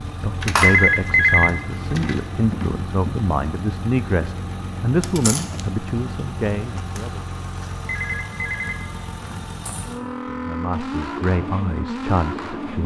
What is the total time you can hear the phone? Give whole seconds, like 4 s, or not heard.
4 s.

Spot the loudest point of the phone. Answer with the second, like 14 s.
1 s.